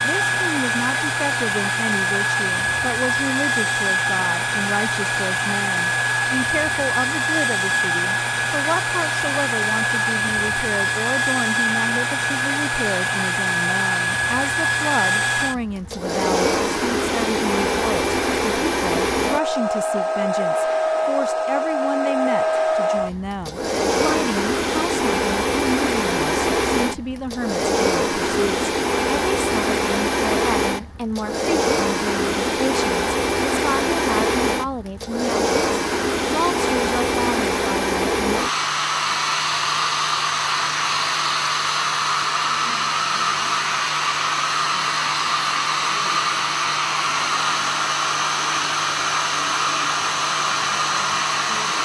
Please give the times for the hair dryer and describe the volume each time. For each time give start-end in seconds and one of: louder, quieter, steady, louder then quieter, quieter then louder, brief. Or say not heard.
0.0-51.8 steady.